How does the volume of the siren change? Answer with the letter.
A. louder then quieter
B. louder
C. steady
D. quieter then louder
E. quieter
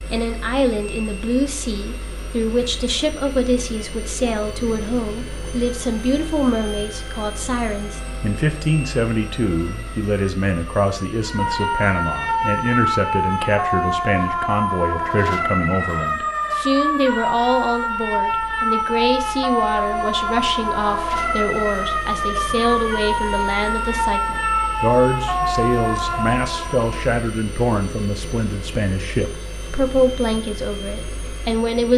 B.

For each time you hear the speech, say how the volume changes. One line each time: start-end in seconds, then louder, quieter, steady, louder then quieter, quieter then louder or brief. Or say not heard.
0.1-31.9 steady.